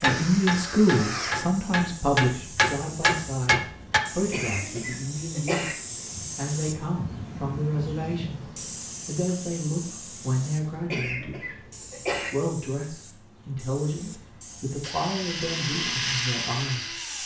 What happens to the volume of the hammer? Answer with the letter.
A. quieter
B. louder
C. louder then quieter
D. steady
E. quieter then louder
B.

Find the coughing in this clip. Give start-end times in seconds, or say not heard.
4.3-5.8, 10.9-12.3.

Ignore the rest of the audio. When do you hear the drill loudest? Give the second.
16 s.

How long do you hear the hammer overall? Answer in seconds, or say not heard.
4 s.